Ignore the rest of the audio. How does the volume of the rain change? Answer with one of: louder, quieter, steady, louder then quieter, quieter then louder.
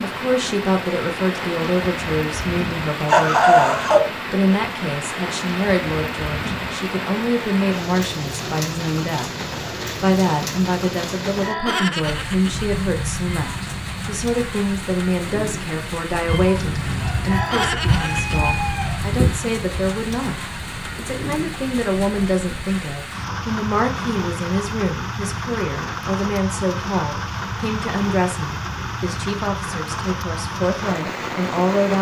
steady.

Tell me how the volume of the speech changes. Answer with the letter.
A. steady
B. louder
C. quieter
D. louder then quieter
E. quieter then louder
A.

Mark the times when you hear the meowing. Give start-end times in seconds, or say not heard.
13.2-14.2, 16.2-17.4.